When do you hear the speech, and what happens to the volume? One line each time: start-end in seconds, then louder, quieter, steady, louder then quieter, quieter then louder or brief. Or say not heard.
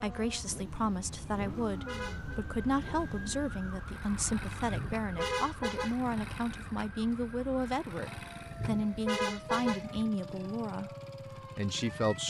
0.0-10.9 steady
11.6-12.2 brief.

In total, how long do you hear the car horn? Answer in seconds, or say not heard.
4 s.